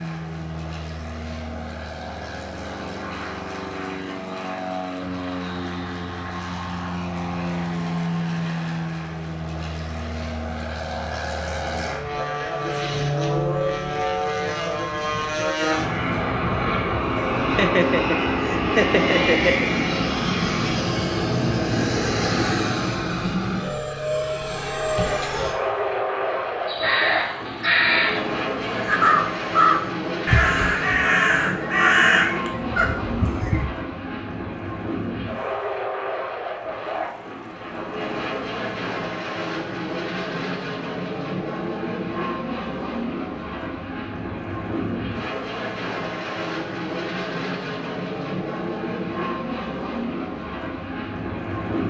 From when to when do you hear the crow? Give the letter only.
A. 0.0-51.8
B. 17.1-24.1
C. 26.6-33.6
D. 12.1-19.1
C.